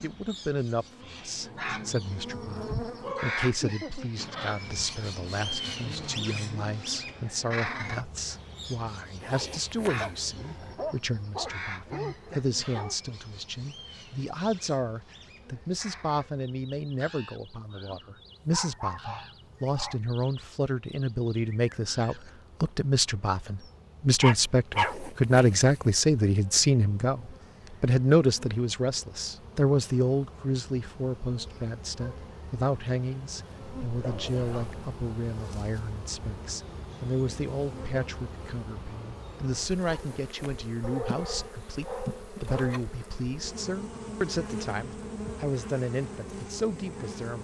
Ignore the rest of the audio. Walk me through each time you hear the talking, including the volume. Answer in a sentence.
You can hear the talking from 0.0 to 47.3 s, getting louder then quieter.